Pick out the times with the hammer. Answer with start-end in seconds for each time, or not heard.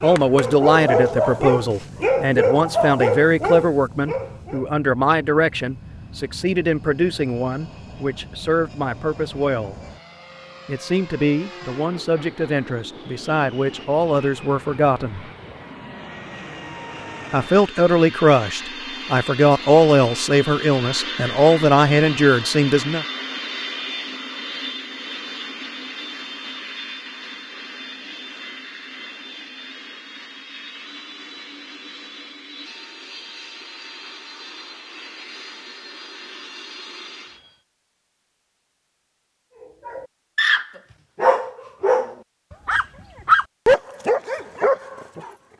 not heard.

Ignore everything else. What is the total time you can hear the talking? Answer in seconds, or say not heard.
20 s.